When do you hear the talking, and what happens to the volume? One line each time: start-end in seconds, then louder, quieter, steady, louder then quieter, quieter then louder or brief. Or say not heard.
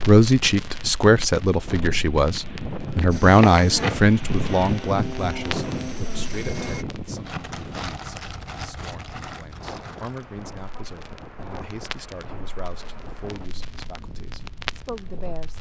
0.1-15.5 quieter.